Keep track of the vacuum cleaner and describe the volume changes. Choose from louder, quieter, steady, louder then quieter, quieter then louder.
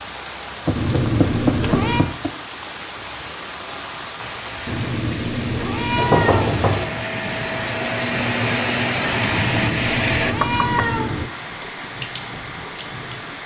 louder.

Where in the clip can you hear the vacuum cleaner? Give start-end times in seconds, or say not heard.
4.2-10.3.